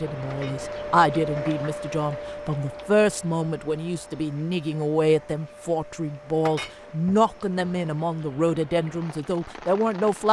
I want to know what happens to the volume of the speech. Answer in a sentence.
The loudness of the speech stays about the same.